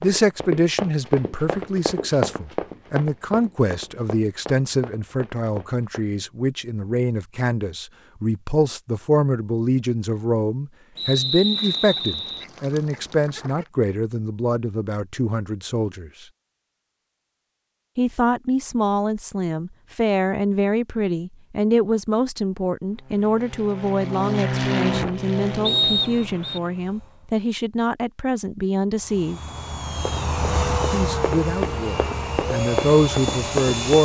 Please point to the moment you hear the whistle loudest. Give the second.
26 s.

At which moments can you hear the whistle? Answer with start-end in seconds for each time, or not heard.
10.9-12.4, 25.6-26.6.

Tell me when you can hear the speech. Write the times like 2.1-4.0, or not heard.
0.0-16.1, 17.9-29.4, 30.9-33.9.